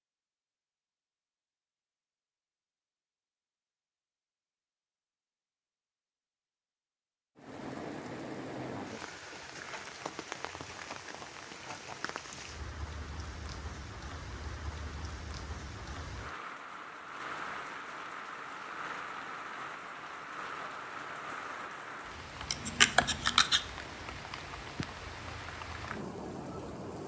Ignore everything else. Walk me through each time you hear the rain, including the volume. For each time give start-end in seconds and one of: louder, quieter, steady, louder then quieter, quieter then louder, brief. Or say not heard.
7.3-27.0 steady.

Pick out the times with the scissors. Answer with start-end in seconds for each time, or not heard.
22.5-23.6.